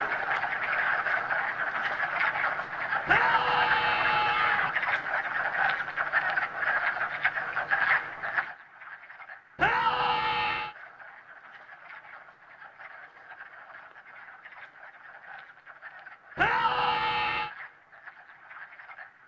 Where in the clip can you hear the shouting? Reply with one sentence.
The shouting can be heard from 3.0 to 4.7 s, from 9.6 to 10.8 s and from 16.4 to 17.5 s.